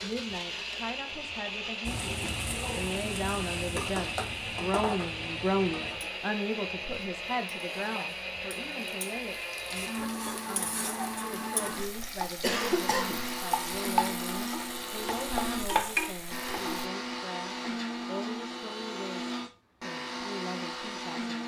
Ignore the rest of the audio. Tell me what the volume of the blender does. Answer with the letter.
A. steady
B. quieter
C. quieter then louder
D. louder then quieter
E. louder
A.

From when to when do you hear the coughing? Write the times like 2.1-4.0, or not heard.
12.4-13.3.